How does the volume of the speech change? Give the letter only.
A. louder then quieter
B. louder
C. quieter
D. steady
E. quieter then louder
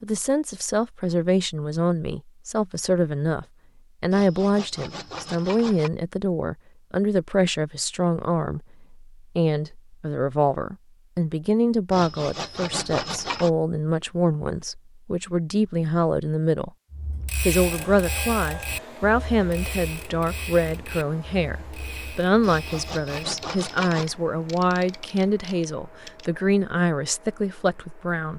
D.